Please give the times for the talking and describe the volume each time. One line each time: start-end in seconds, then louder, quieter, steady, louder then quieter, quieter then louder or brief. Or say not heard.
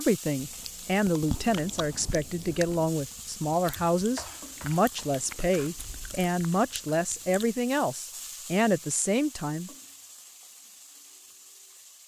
0.0-9.7 steady.